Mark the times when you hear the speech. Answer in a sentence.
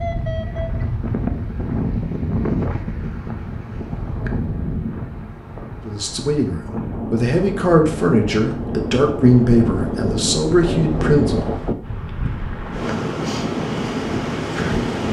The speech can be heard from 5.8 to 11.4 s.